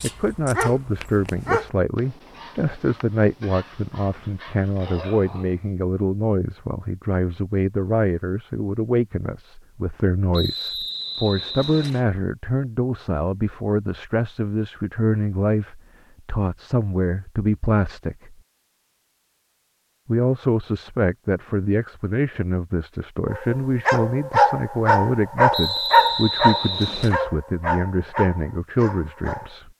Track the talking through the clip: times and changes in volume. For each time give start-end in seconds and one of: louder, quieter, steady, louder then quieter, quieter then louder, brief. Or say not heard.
0.0-18.4 steady
20.1-29.7 steady.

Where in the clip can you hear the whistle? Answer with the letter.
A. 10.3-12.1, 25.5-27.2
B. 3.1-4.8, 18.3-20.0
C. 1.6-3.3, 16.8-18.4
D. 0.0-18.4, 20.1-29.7
A.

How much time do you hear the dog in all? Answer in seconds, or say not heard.
12 s.